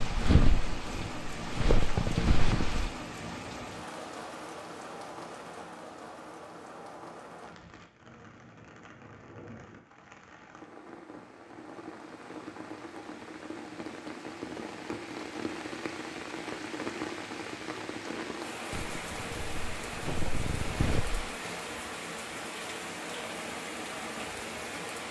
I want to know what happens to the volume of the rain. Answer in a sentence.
The volume of the rain goes down, then up.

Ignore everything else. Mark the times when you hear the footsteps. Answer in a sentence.
The footsteps can be heard from 0.0 to 2.9 s and from 18.7 to 21.2 s.